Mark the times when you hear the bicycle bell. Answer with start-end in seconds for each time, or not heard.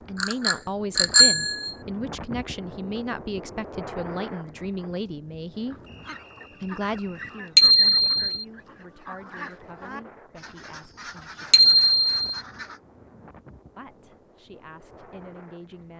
0.2-1.8, 7.5-8.4, 11.5-12.2.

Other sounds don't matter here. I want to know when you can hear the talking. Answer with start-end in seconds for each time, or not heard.
0.0-5.8, 6.6-11.8, 13.8-15.9.